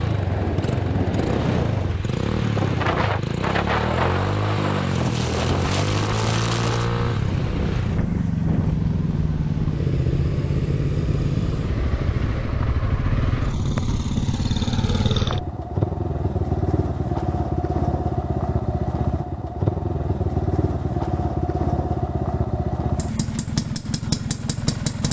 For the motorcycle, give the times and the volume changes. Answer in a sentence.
The motorcycle can be heard from 0.0 to 25.0 s, at a steady volume.